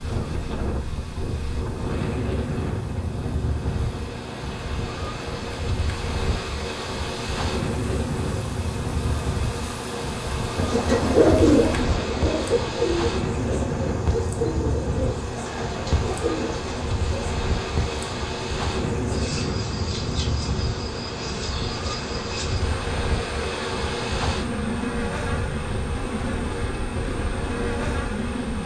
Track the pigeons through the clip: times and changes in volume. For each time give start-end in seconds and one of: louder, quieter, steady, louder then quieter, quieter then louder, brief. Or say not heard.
10.6-17.2 quieter.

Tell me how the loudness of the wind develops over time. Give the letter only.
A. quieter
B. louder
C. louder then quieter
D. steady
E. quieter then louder
D.